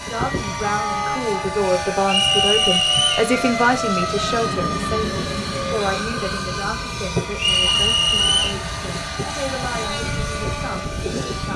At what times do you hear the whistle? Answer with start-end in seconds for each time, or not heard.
2.1-3.3, 7.4-8.6.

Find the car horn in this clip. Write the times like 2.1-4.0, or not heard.
0.6-1.3, 7.7-8.6.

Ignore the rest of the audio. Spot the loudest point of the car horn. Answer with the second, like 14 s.
1 s.